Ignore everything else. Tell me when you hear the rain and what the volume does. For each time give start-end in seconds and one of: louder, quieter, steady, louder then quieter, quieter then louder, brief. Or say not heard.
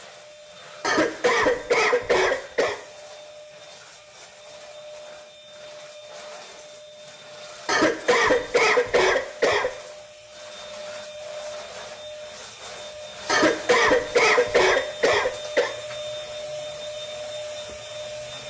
not heard.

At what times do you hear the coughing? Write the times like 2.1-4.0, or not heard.
0.8-2.8, 7.7-9.7, 13.2-15.7.